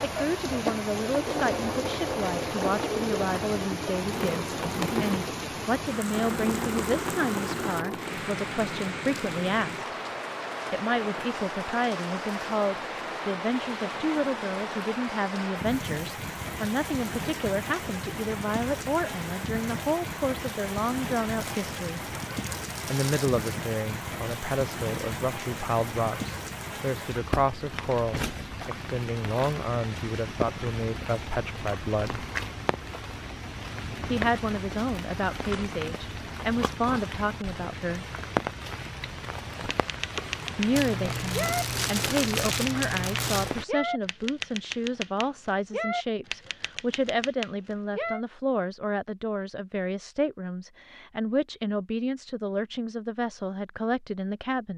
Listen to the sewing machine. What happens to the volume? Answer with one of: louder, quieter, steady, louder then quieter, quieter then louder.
steady.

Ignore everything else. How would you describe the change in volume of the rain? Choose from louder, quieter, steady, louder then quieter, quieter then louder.
steady.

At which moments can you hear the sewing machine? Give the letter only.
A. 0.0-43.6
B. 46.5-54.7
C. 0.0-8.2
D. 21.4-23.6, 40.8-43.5
C.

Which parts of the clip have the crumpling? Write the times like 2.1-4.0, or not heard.
21.4-23.6, 40.8-43.5.